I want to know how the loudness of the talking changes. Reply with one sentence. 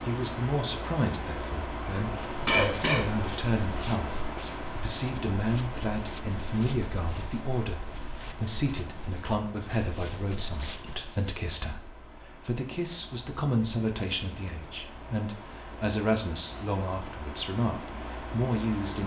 The volume of the talking stays about the same.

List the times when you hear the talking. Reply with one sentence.
The talking can be heard from 0.0 to 19.0 s.